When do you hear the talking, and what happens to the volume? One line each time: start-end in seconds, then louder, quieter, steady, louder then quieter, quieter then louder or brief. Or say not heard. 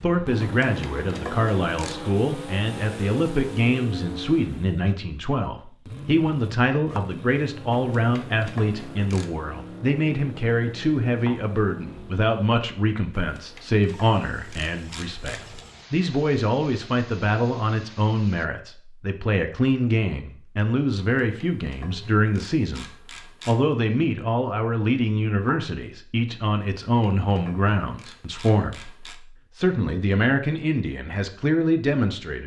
0.0-32.4 steady.